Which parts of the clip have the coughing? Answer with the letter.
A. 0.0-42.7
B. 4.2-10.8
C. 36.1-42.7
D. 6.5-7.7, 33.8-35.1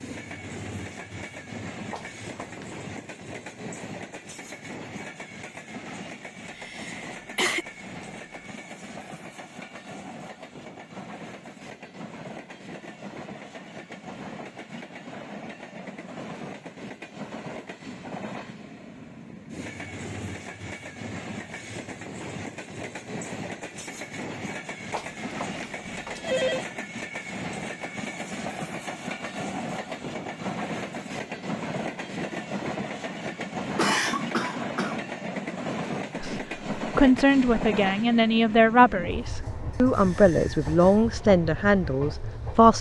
D.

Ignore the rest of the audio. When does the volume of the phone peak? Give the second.
26 s.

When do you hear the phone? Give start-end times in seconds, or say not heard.
1.9-2.7, 24.9-26.6.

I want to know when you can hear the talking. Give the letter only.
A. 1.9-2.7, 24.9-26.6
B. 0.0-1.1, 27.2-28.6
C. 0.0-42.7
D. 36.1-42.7
D.